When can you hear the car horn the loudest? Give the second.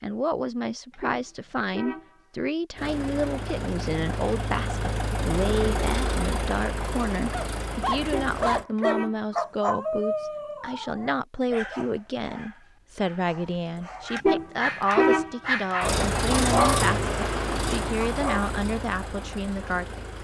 15 s.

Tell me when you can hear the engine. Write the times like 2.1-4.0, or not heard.
2.8-8.7, 15.8-20.1.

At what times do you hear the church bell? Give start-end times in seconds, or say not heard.
not heard.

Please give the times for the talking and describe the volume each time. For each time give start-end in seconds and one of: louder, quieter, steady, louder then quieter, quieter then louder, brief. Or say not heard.
0.0-20.1 steady.